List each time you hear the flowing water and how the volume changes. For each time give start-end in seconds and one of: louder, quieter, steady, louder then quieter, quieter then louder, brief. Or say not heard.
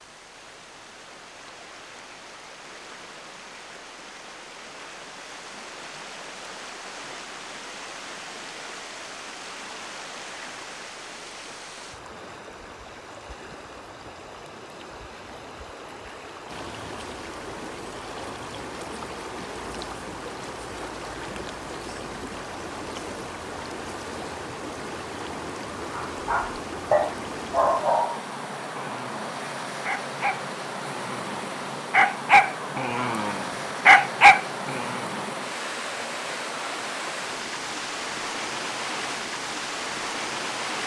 0.0-40.8 louder.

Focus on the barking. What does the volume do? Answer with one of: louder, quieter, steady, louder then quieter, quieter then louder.
quieter then louder.